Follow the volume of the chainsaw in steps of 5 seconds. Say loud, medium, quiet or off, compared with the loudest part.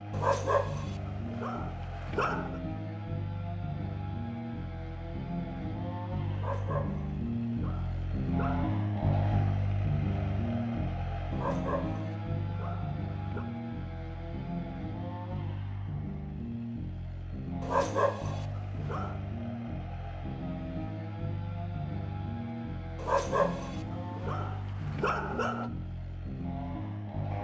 medium, loud, loud, medium, medium, medium.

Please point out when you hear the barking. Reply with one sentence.
You can hear the barking from 0.1 to 2.6 s, from 6.3 to 8.7 s, from 11.3 to 13.4 s, from 17.6 to 19.1 s and from 22.9 to 25.7 s.